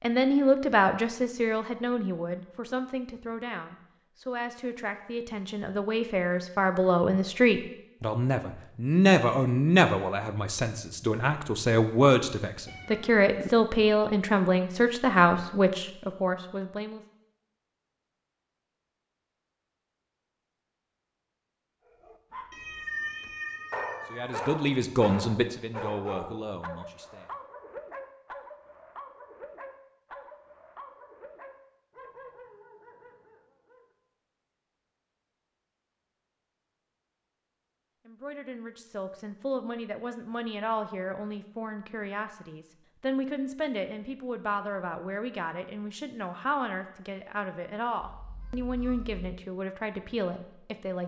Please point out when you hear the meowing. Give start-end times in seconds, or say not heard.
12.7-13.5, 22.5-24.4, 48.0-49.2.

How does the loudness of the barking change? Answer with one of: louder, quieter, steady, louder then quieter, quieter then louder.
quieter.